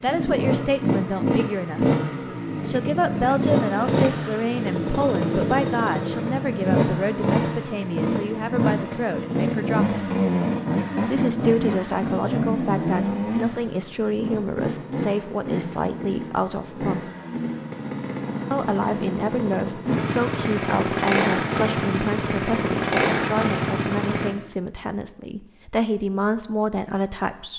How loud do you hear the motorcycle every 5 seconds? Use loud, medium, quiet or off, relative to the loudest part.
loud, loud, loud, medium, loud, off.